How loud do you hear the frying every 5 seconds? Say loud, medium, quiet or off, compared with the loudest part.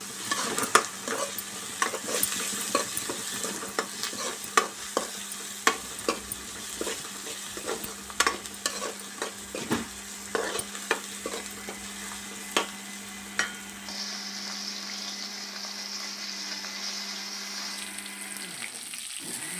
loud, loud, medium, medium.